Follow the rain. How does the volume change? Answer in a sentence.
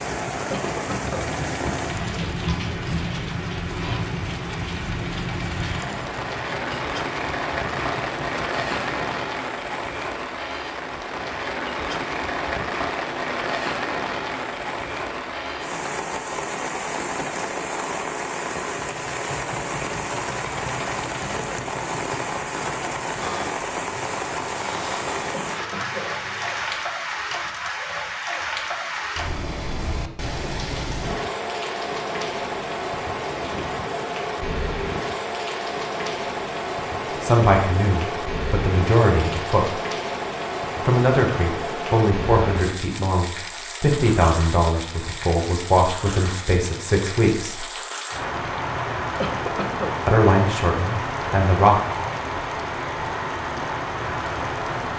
The loudness of the rain stays about the same.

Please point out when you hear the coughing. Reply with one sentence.
The coughing can be heard from 0.5 to 1.3 s, from 25.3 to 26.1 s and from 49.1 to 50.0 s.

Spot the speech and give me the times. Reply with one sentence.
You can hear the speech from 37.2 to 39.8 s, from 40.8 to 47.6 s and from 50.0 to 51.8 s.